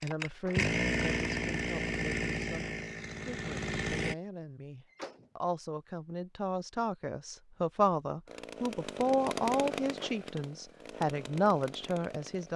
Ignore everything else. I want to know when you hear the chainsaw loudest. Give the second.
1 s.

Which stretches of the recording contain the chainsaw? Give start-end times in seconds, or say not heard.
0.0-4.2, 8.2-12.5.